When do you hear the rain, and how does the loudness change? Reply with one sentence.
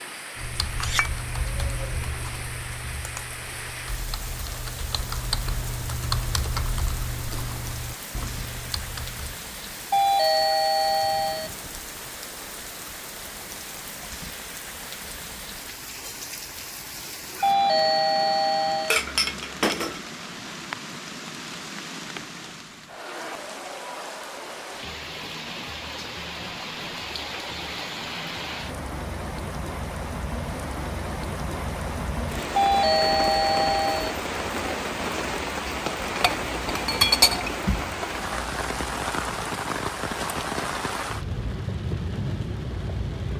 The rain can be heard from 0.0 to 43.3 s, getting louder.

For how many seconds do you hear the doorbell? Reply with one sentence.
You can hear the doorbell for 5 seconds altogether.